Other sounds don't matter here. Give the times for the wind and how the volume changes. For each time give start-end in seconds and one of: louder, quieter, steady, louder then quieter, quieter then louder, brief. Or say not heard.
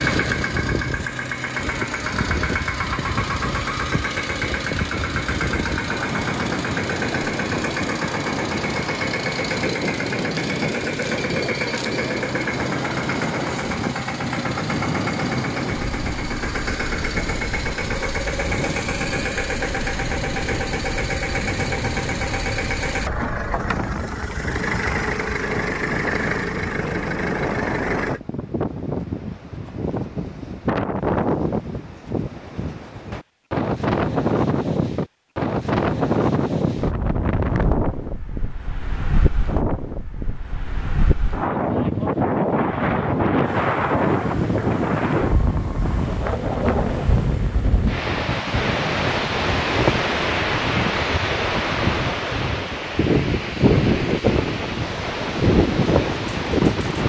0.0-57.0 louder.